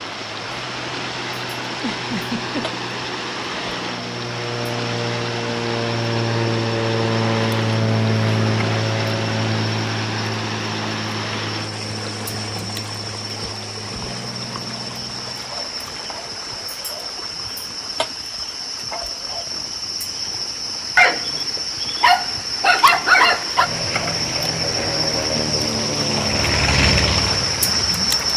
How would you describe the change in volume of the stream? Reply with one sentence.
The loudness of the stream goes down, then up.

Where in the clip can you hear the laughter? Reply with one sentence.
The laughter can be heard from 1.6 to 2.6 s.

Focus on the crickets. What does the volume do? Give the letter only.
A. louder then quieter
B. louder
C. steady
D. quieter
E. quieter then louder
B.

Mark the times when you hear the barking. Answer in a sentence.
You can hear the barking from 20.9 to 23.7 s.